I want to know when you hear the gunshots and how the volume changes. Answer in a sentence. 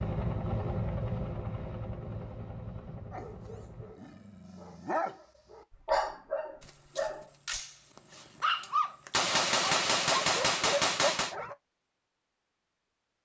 You can hear the gunshots from 6.7 to 11.3 s, getting quieter then louder.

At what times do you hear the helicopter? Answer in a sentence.
You can hear the helicopter from 0.0 to 4.0 s.